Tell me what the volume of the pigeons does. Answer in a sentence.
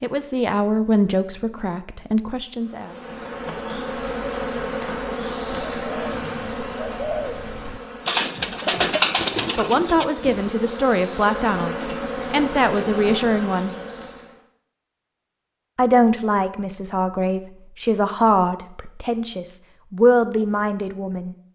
The loudness of the pigeons goes up, then down.